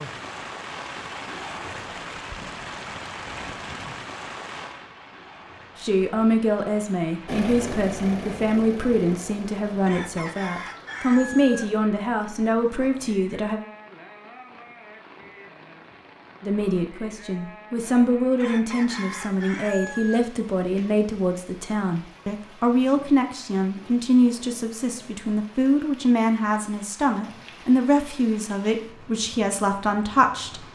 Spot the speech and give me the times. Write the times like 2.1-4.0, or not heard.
5.8-13.6, 16.4-30.6.